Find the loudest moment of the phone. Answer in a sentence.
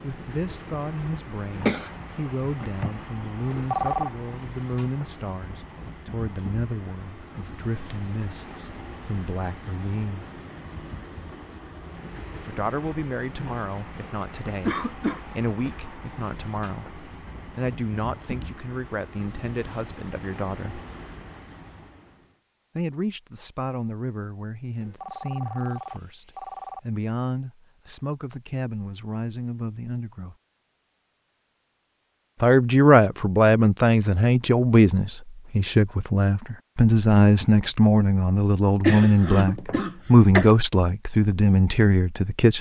The volume of the phone peaks at 4 seconds.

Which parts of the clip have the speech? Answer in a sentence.
You can hear the speech from 0.0 to 10.2 s, from 12.4 to 20.9 s, from 22.8 to 30.4 s and from 32.4 to 42.5 s.